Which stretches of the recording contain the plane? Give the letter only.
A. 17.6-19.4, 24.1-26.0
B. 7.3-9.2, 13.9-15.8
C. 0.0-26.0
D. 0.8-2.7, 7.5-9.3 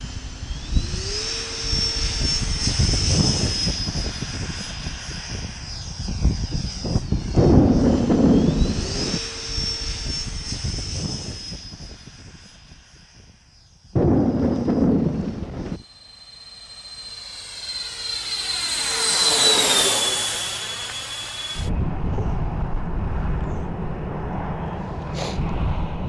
C.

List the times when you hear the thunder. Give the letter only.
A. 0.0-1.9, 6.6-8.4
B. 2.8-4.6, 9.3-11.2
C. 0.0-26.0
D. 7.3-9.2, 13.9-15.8
D.